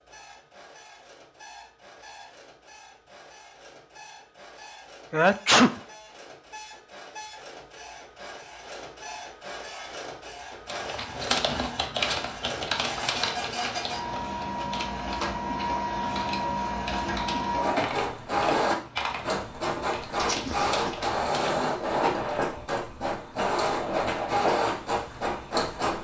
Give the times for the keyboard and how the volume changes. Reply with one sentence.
The keyboard can be heard from 10.7 to 21.5 s, getting quieter.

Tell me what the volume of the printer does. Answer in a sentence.
The volume of the printer goes up.